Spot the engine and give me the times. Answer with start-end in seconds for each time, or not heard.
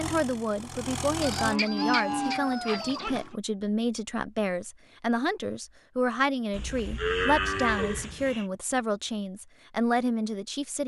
0.0-1.6.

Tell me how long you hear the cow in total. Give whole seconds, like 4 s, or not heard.
4 s.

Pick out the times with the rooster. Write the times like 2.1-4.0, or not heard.
1.1-3.1.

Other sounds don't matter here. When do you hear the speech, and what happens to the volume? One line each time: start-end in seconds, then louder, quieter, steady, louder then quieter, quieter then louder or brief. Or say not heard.
0.0-10.8 steady.